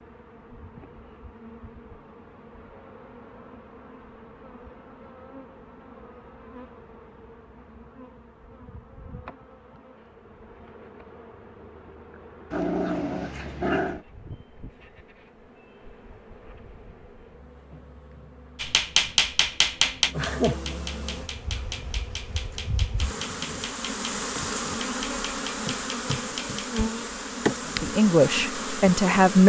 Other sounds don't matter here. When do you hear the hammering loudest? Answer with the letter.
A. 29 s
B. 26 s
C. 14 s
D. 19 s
D.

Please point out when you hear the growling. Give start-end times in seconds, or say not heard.
12.5-14.1.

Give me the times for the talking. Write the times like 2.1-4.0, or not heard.
27.8-29.4.